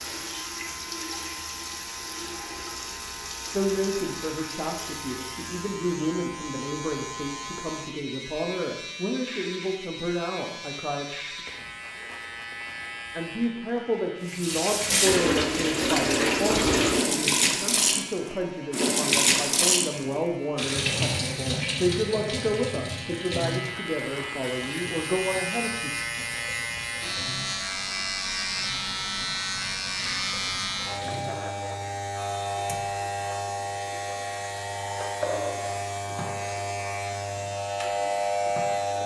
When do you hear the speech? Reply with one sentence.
You can hear the speech from 3.5 to 11.4 s and from 13.2 to 25.9 s.